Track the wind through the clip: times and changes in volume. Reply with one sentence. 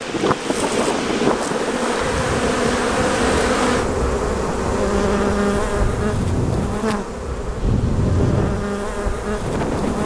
The wind can be heard from 0.0 to 10.0 s, getting quieter then louder.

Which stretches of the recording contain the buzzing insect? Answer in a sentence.
You can hear the buzzing insect from 0.0 to 10.0 s.